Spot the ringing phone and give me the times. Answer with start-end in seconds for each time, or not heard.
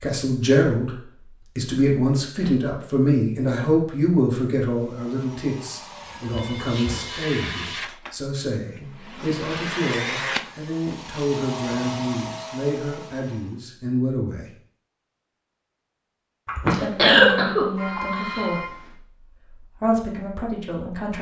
6.0-7.8, 17.8-18.9.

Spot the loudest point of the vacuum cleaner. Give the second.
10 s.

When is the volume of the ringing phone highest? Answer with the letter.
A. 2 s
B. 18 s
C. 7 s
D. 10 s
B.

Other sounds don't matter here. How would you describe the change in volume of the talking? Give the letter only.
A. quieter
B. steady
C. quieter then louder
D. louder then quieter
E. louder
A.